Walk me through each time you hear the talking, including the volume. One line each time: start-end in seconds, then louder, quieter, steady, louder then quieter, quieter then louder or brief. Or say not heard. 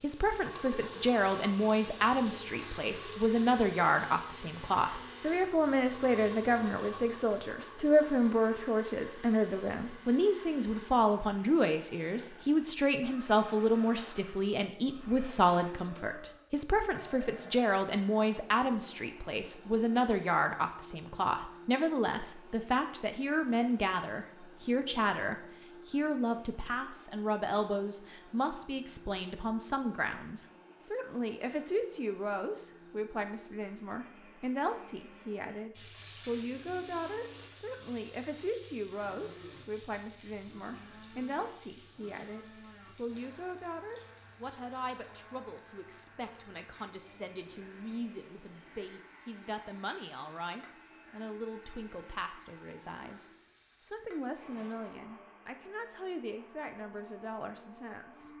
0.0-58.3 quieter.